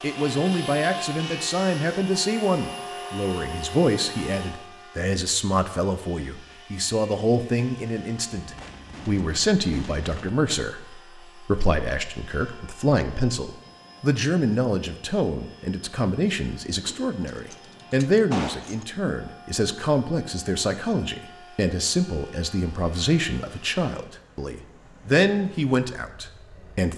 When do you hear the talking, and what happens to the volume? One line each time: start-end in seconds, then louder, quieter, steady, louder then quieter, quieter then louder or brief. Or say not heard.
0.0-26.9 steady.